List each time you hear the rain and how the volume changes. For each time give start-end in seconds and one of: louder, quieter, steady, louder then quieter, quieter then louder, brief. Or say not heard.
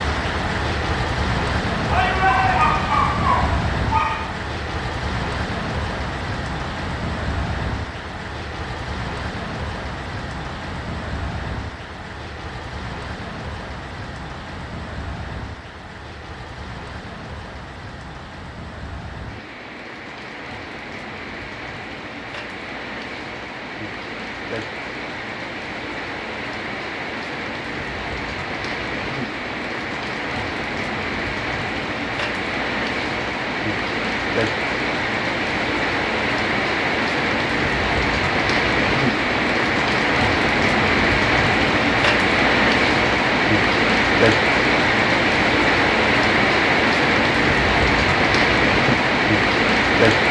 0.0-50.2 quieter then louder.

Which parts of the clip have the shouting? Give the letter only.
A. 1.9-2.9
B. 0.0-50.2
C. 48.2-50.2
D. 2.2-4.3
A.